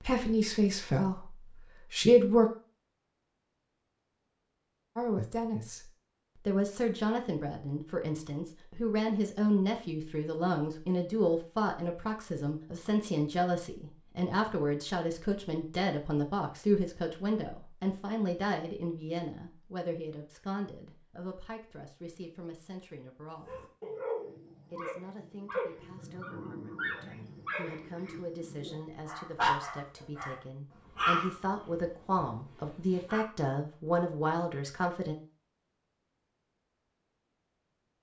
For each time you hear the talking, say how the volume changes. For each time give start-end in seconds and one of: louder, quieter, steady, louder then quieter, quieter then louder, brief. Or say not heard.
0.0-2.5 brief
5.0-23.6 quieter
24.7-35.1 louder.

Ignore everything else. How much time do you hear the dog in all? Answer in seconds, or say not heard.
10 s.